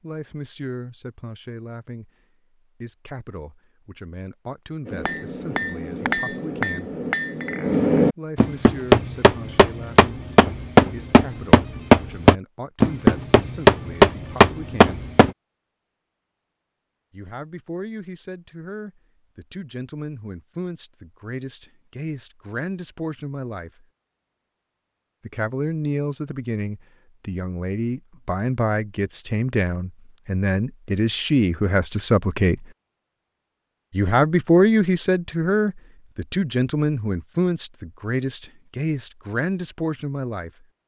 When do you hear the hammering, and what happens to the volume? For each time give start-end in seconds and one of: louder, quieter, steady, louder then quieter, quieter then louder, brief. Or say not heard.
4.8-15.3 louder.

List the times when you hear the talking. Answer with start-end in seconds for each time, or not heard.
0.0-2.1, 2.8-7.0, 8.2-15.0, 17.1-23.9, 25.2-32.6, 33.9-40.6.